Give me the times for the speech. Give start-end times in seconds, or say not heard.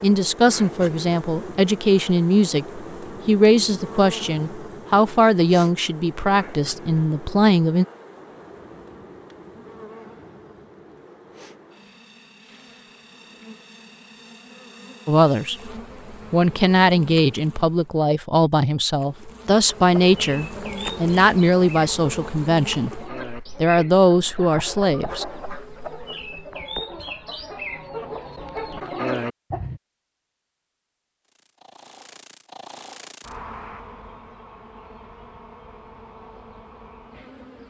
0.0-7.8, 15.1-15.7, 16.3-23.0, 23.6-25.2.